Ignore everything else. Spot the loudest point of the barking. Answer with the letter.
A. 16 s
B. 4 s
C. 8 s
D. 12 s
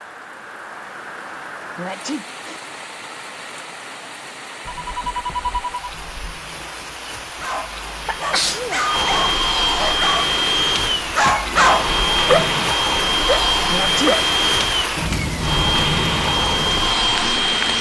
D.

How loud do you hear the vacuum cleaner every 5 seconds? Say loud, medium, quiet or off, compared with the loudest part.
off, loud, loud, loud.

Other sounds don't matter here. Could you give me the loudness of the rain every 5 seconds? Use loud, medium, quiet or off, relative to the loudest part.
medium, medium, loud, loud.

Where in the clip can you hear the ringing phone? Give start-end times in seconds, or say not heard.
4.7-6.4.